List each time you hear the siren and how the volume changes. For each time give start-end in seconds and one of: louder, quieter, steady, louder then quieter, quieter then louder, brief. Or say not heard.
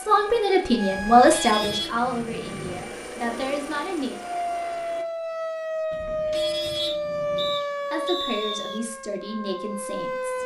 0.2-1.9 brief
4.1-10.4 quieter.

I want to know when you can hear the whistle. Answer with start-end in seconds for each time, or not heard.
6.8-8.8.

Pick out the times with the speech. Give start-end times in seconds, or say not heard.
0.0-4.2, 7.9-10.4.